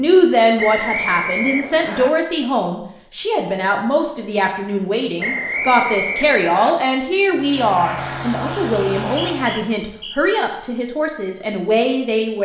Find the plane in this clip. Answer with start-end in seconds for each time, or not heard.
7.3-9.8.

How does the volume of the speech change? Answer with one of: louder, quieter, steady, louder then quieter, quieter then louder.
steady.